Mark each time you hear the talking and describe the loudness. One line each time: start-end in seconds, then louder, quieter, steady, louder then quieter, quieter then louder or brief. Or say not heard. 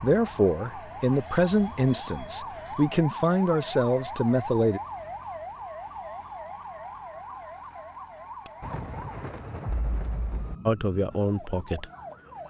0.0-4.8 quieter then louder
10.7-11.8 brief.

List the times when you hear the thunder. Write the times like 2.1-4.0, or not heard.
8.6-10.6.